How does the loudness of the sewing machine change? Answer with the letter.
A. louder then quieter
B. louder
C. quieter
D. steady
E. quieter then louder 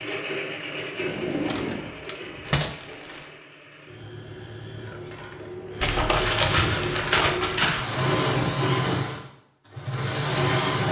E.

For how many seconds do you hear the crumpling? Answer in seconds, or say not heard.
3 s.